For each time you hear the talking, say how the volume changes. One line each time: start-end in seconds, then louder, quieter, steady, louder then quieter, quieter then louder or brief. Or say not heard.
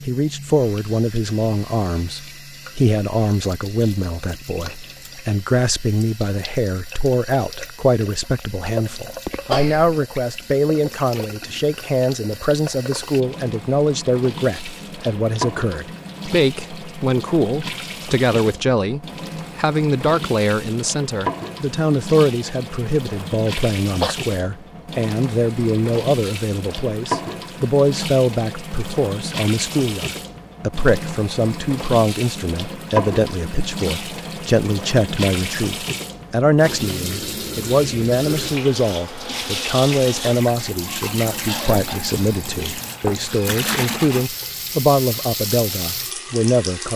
0.1-46.9 steady.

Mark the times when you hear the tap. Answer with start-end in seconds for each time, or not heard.
0.0-46.9.